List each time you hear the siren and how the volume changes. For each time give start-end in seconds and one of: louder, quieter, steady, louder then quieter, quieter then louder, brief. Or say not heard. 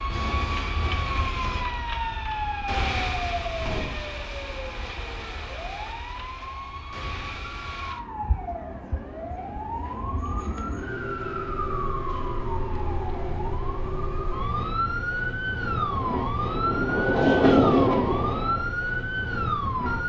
0.0-20.0 quieter then louder.